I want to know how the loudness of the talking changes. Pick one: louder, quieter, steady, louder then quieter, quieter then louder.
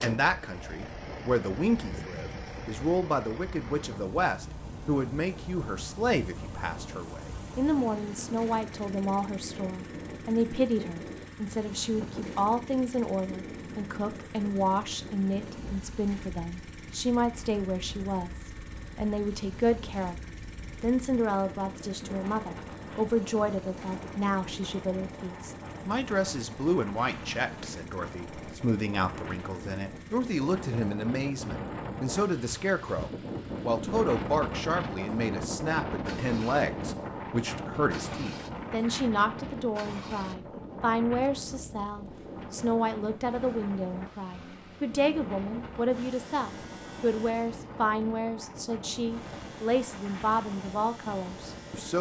steady.